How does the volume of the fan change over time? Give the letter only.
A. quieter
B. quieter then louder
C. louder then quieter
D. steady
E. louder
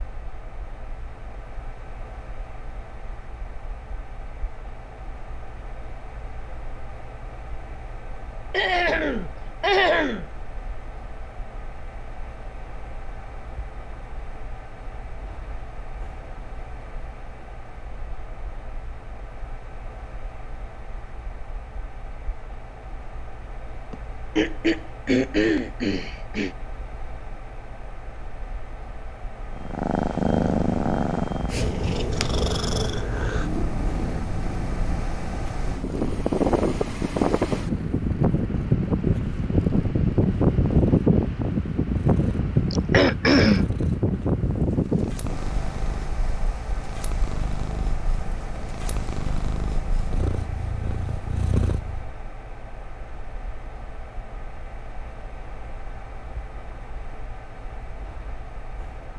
C.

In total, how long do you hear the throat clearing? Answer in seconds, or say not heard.
5 s.